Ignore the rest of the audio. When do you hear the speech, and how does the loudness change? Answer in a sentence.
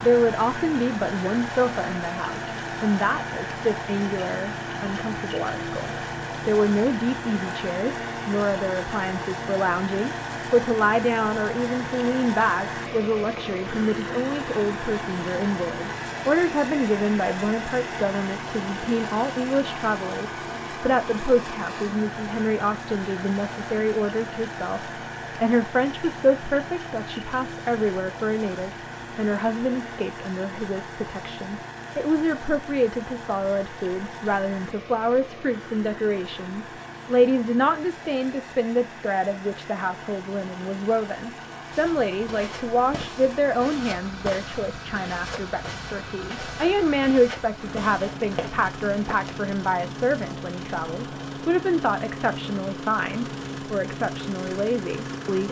The speech can be heard from 0.0 to 55.4 s, at a steady volume.